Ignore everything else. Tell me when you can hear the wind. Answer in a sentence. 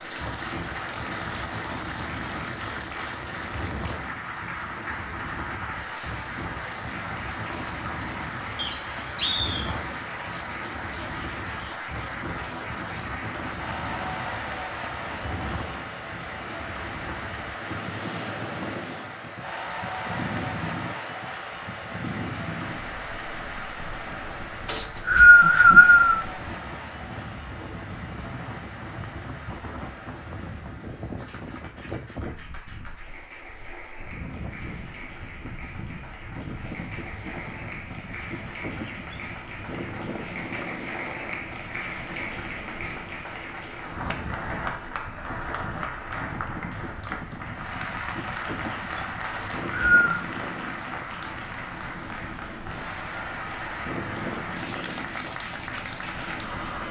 The wind can be heard from 0.0 to 56.8 s.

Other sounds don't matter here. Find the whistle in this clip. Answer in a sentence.
You can hear the whistle from 8.6 to 9.8 s, from 24.6 to 26.2 s and from 49.3 to 50.1 s.